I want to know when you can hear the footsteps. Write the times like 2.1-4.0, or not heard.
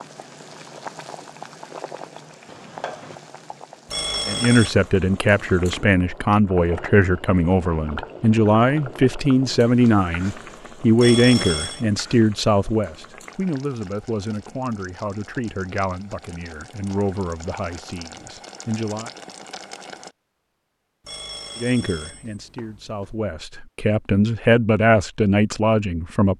not heard.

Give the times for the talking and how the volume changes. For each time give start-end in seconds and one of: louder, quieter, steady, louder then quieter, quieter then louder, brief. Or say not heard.
4.2-19.1 quieter
21.6-26.3 louder.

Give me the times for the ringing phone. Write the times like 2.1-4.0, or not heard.
3.9-4.8, 10.9-11.8, 21.0-23.2.